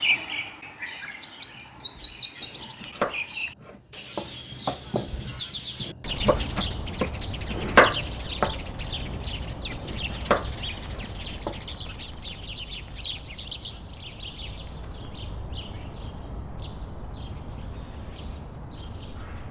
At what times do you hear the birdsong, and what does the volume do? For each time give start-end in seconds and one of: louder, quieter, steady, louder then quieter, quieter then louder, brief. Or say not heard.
0.0-19.4 quieter.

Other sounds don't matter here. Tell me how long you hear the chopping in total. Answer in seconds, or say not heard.
10 s.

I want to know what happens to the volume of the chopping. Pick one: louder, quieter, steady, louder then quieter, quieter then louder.
louder then quieter.